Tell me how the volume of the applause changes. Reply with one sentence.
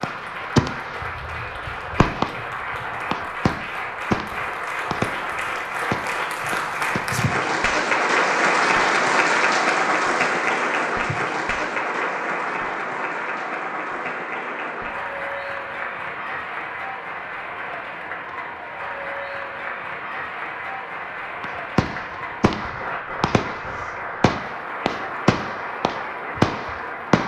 The volume of the applause goes up, then down.